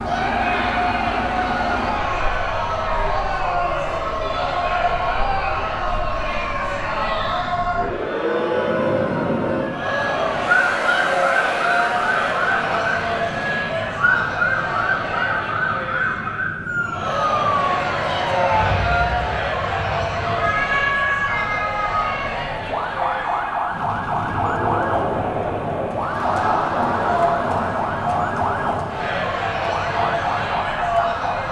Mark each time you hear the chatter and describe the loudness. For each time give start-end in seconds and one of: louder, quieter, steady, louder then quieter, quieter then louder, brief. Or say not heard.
0.0-31.4 steady.